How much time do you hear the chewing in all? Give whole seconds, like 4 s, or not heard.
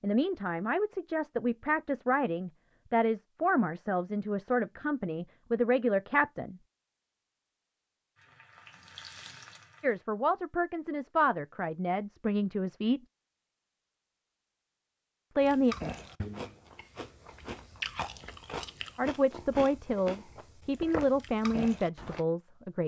7 s.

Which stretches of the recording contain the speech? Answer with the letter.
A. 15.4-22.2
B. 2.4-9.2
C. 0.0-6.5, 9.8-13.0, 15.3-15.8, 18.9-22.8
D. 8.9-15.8
C.